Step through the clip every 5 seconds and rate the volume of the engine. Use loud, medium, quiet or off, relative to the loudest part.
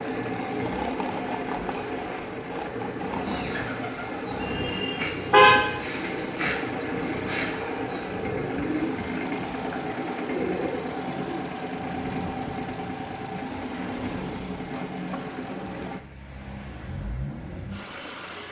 loud, loud, loud, medium.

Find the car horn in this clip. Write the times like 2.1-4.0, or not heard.
5.3-5.7.